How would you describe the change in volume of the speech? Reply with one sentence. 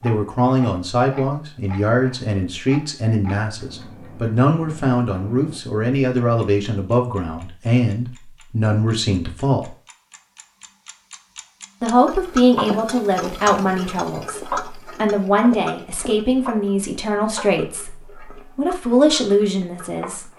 The volume of the speech stays about the same.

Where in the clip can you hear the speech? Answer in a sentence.
You can hear the speech from 0.0 to 9.7 s and from 11.8 to 20.2 s.